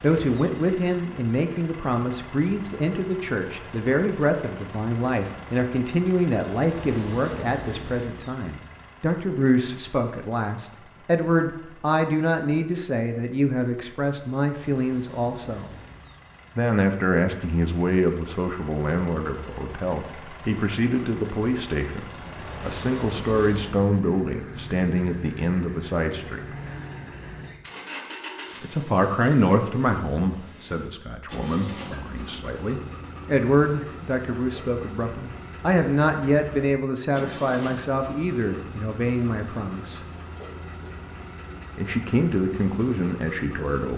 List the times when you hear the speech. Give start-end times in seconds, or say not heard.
0.0-15.7, 16.6-26.6, 28.6-40.0, 41.8-43.9.